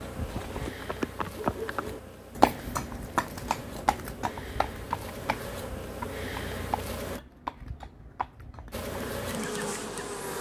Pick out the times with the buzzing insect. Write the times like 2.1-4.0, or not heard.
0.0-7.2, 8.7-10.3.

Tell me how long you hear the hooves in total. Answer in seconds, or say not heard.
9 s.